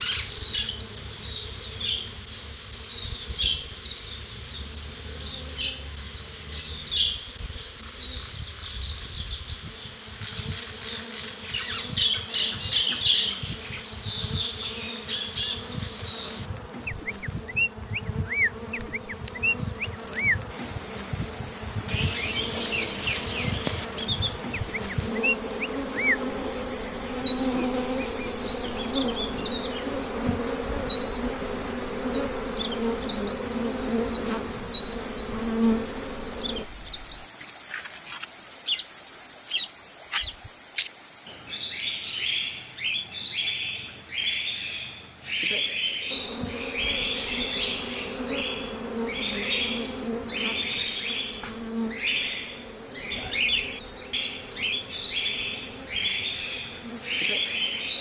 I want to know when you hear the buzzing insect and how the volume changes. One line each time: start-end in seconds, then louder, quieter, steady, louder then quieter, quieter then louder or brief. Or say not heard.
0.0-36.6 louder
46.1-57.9 quieter.